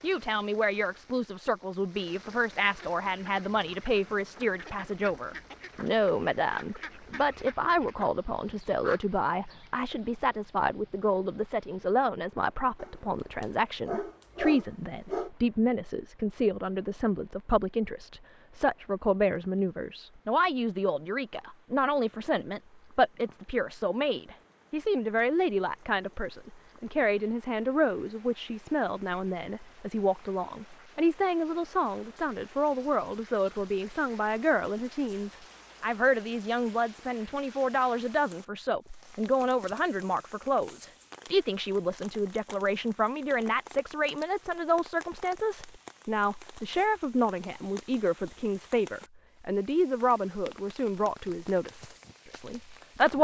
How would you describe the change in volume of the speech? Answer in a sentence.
The loudness of the speech stays about the same.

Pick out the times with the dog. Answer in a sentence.
The dog can be heard from 12.8 to 15.3 s.